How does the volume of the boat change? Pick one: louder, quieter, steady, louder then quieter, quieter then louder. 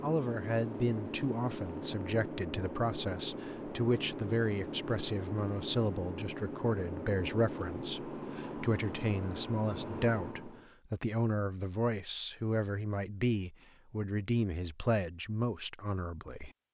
steady.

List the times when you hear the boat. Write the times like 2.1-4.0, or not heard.
0.0-10.7.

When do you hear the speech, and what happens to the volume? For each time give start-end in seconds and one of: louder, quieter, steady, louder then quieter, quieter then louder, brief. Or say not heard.
0.0-16.5 steady.